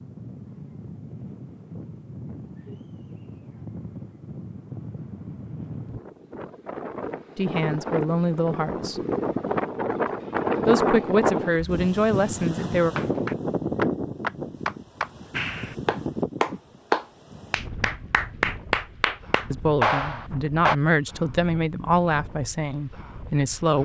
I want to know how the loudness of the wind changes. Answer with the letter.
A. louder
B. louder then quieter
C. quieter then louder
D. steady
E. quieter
B.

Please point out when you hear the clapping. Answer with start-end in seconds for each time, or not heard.
12.8-20.8.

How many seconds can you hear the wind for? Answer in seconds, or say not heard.
24 s.